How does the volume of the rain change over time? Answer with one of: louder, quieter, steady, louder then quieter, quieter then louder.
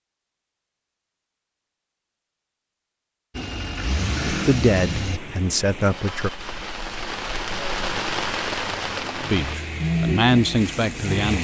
louder then quieter.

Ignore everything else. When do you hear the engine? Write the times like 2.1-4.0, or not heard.
3.4-5.2, 8.8-11.3.